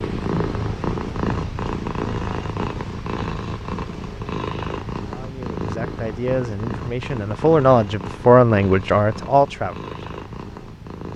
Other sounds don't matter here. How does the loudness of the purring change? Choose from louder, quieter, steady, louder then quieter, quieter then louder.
quieter.